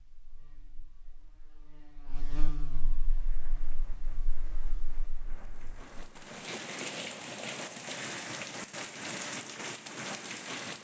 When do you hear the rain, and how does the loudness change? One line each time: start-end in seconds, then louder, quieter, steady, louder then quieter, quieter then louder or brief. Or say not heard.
2.9-10.7 louder.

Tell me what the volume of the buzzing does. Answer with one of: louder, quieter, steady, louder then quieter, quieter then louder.
louder then quieter.